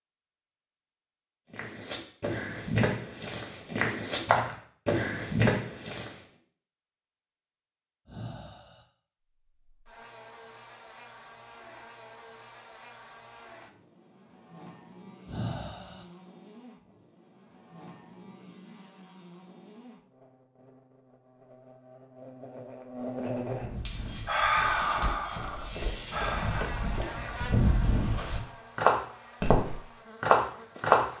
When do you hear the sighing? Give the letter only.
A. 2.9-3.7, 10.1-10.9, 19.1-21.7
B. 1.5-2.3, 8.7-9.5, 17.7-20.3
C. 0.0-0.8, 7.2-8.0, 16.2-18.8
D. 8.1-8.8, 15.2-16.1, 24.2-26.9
D.